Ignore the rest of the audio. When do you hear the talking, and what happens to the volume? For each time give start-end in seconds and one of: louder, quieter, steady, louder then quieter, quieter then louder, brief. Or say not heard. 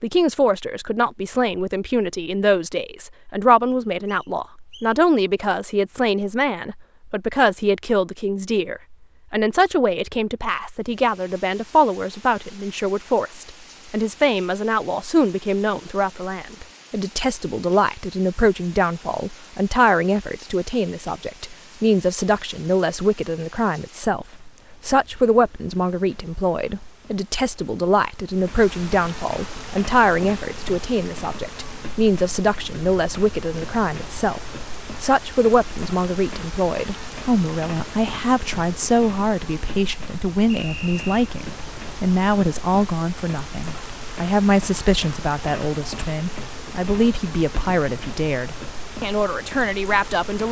0.0-50.4 steady.